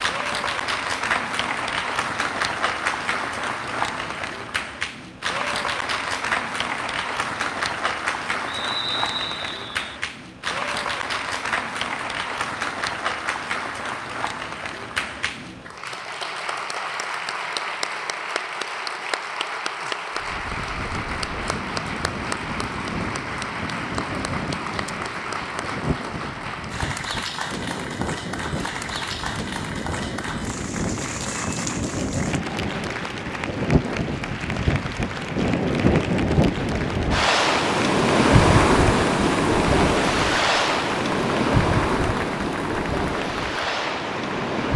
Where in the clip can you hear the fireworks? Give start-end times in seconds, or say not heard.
not heard.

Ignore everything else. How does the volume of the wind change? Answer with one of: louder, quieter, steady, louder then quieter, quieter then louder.
louder.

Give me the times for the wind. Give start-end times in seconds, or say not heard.
20.1-44.7.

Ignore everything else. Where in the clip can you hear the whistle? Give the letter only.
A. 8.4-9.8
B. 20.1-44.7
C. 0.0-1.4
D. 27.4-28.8
A.